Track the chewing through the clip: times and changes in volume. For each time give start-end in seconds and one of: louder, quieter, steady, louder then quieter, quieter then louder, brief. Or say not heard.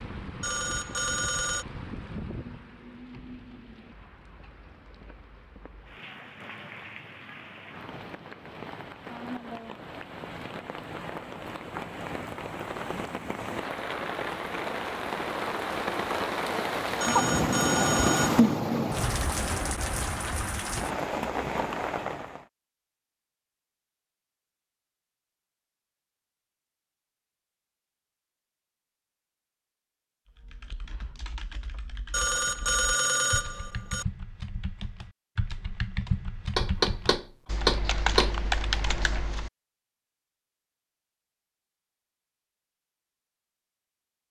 not heard.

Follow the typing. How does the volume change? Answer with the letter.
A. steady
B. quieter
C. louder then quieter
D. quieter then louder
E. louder
E.